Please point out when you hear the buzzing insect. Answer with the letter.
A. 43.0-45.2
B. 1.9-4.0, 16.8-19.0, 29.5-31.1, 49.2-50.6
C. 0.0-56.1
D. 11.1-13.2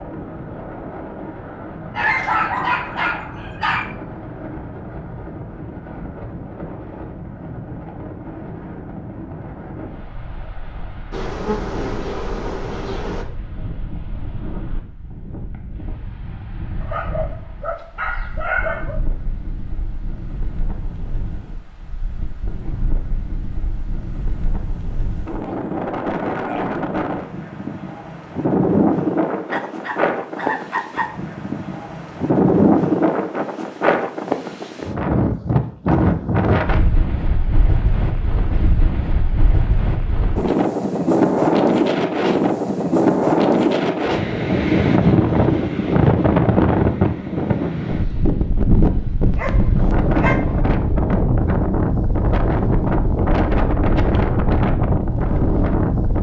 D.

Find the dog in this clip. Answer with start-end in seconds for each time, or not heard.
1.9-4.0, 16.8-19.0, 29.5-31.1, 49.2-50.6.